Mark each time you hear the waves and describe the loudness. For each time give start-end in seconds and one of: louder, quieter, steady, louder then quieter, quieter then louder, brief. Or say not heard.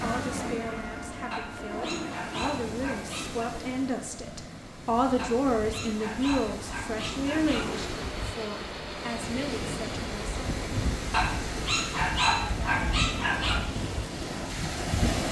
0.0-15.2 louder.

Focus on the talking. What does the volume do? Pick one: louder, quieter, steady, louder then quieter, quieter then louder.
louder then quieter.